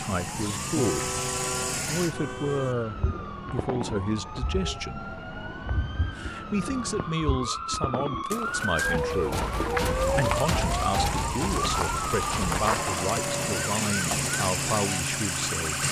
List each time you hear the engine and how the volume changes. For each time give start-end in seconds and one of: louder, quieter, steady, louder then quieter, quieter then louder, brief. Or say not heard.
0.0-2.1 brief
9.9-15.8 louder.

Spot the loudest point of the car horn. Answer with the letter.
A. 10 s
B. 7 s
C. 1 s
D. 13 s
C.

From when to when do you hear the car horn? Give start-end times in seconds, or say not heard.
0.8-2.8.